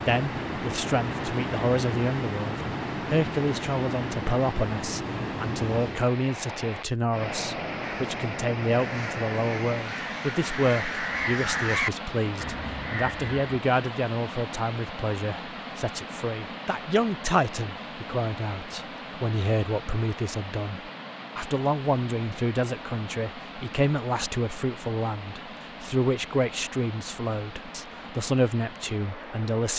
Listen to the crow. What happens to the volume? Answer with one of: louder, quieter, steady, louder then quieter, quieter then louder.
louder then quieter.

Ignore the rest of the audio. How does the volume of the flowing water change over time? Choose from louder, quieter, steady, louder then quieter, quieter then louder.
quieter.